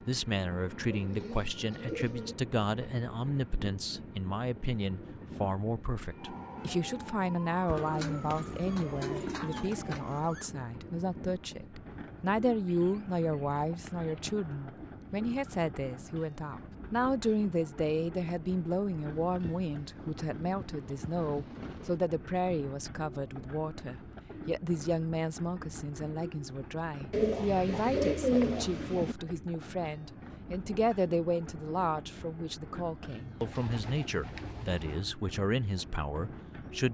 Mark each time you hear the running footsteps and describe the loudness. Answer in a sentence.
You can't hear the running footsteps here.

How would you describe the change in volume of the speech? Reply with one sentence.
The loudness of the speech stays about the same.